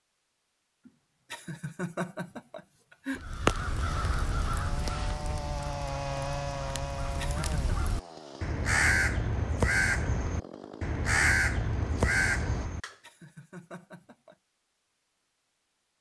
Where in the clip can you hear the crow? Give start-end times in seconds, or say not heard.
3.1-12.9.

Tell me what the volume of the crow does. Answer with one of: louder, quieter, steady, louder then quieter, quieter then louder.
quieter then louder.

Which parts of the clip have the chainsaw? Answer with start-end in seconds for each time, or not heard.
3.9-12.7.